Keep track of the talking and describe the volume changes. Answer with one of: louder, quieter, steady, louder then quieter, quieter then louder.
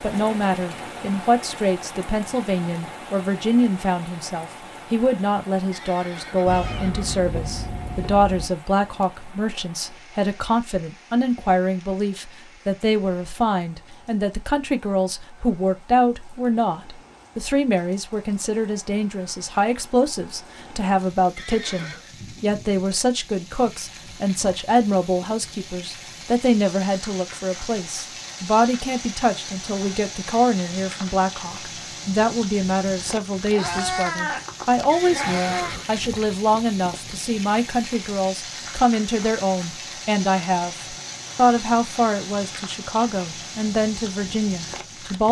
steady.